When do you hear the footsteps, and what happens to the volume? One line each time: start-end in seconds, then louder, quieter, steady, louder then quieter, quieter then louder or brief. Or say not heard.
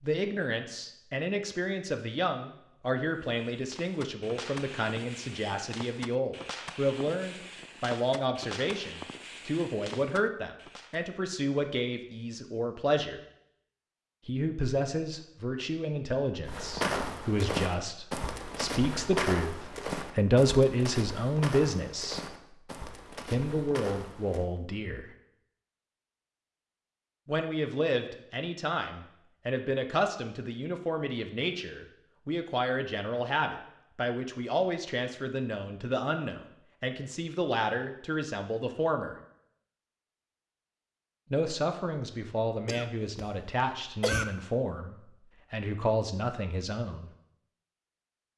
16.4-24.4 quieter.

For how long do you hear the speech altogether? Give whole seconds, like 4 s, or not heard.
41 s.